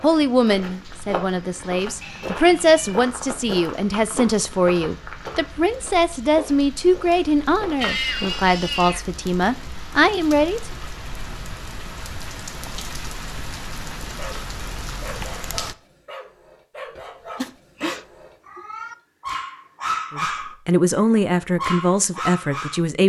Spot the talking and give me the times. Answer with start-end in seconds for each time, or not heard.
0.0-10.6, 20.1-23.0.